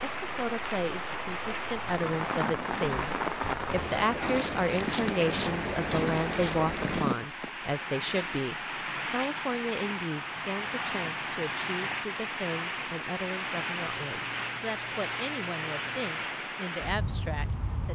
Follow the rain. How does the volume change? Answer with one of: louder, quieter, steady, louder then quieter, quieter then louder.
steady.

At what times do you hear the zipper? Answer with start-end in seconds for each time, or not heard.
not heard.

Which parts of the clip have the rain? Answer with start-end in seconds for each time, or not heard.
0.0-17.9.